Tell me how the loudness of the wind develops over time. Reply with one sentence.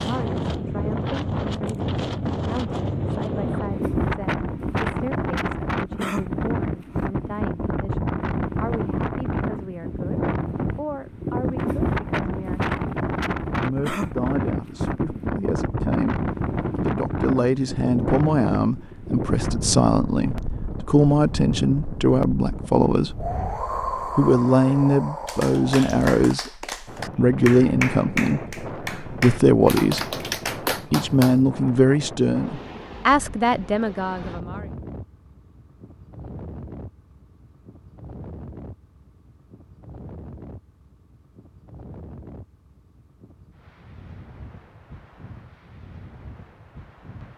The volume of the wind goes down.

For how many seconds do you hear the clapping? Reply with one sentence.
You can hear the clapping for 6 seconds altogether.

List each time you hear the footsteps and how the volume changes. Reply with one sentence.
You can't hear the footsteps here.